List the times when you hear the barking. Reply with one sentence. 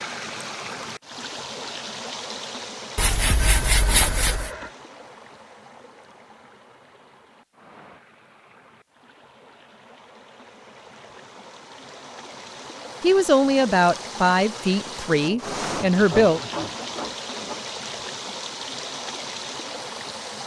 The barking can't be heard in this clip.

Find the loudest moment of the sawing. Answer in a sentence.
The loudest moment of the sawing is at 4 seconds.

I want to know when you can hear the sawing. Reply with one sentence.
You can hear the sawing from 3.0 to 4.5 s and from 15.2 to 17.6 s.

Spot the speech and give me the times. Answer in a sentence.
You can hear the speech from 13.0 to 16.4 s.